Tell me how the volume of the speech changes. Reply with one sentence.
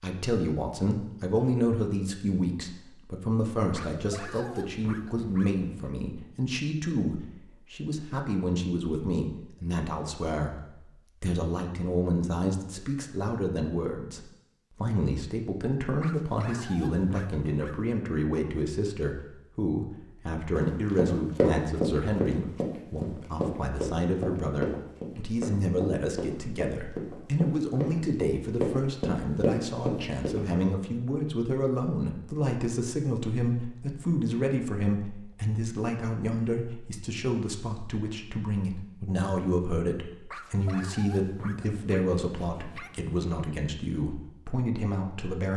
The loudness of the speech stays about the same.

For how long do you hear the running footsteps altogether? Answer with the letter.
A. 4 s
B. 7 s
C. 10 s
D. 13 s
C.